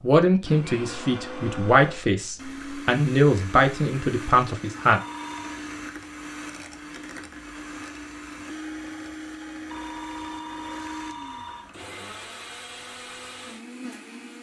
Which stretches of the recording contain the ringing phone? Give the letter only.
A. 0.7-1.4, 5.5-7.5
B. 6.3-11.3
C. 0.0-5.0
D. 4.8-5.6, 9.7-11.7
D.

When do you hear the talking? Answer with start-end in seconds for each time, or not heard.
0.0-5.0.